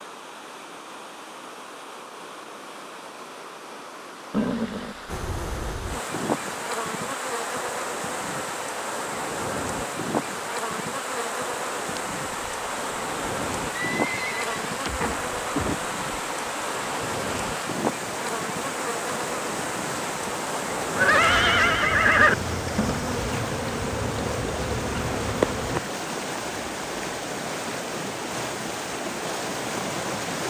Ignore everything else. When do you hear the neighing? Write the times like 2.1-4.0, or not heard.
4.3-5.2, 13.8-15.8, 20.9-22.4.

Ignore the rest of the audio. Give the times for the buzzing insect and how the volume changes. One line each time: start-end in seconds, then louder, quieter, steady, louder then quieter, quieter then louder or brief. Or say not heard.
5.0-25.8 steady.